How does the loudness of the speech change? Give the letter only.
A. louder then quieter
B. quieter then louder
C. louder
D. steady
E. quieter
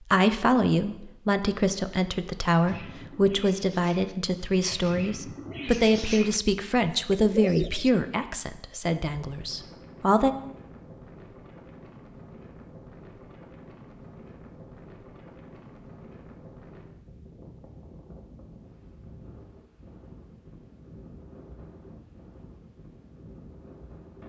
E.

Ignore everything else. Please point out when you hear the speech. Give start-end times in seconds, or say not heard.
0.0-10.3.